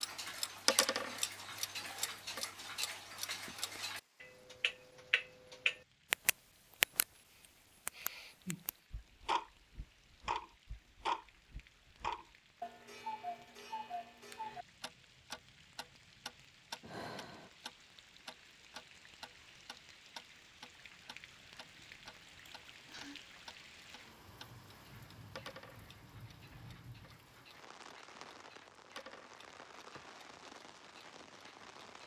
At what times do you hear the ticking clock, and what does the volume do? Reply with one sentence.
The ticking clock can be heard from 0.0 to 7.0 s, getting quieter then louder; and from 7.8 to 31.9 s, getting quieter.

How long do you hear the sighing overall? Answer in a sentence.
The sighing can be heard for 3 seconds in total.